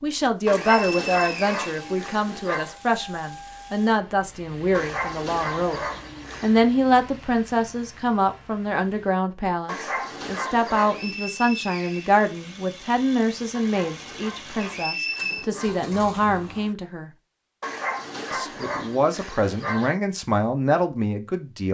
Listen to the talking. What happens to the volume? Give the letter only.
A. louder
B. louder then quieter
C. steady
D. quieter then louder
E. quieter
C.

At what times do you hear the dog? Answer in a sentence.
You can hear the dog from 0.5 to 2.8 s, from 4.7 to 6.7 s, from 9.7 to 11.2 s, from 13.5 to 15.8 s and from 17.6 to 19.9 s.